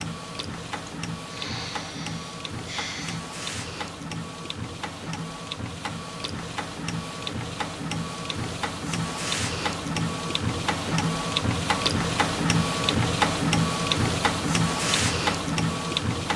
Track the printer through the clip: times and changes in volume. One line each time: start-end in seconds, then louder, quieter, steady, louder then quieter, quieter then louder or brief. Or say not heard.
0.0-16.3 louder.